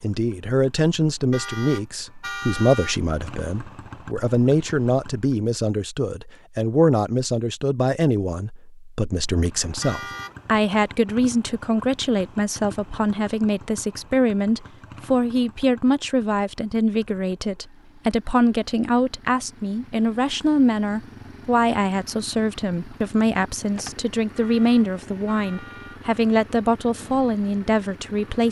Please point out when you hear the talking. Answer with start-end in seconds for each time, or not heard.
0.0-28.4.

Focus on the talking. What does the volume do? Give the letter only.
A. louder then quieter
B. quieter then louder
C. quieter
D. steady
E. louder
D.